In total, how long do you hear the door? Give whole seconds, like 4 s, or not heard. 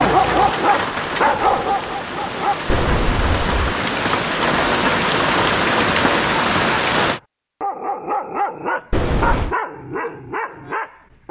2 s.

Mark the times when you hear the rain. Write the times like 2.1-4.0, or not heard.
0.0-7.2.